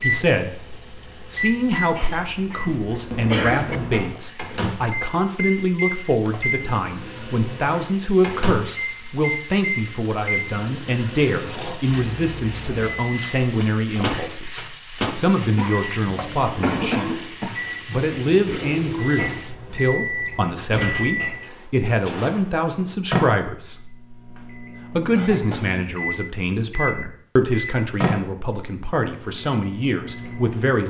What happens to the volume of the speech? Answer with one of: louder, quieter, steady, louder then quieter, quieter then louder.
steady.